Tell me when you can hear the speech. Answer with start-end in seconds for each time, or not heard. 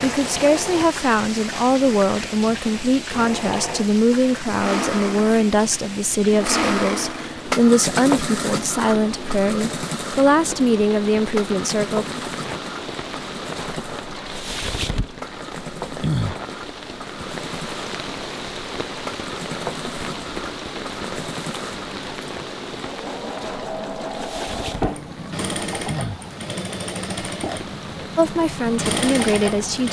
0.0-12.1, 28.1-29.8.